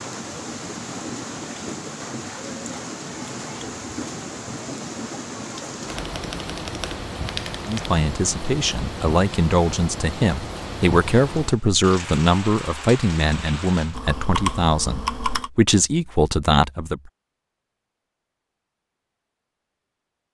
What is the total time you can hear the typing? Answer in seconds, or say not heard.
4 s.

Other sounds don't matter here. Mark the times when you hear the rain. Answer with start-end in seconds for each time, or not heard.
0.0-14.1.